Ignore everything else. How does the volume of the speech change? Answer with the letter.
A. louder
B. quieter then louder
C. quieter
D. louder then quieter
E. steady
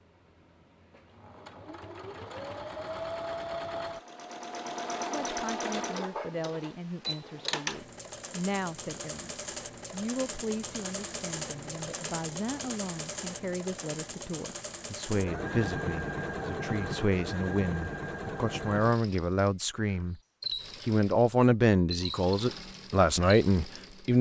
A.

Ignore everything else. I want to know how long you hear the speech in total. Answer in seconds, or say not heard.
18 s.